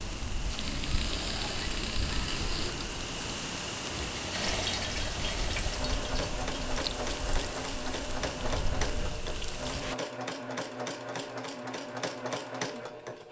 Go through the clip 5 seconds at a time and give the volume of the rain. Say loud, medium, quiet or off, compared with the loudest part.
loud, loud, off.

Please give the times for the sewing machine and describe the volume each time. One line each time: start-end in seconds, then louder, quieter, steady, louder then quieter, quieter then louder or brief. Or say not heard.
0.1-13.2 steady.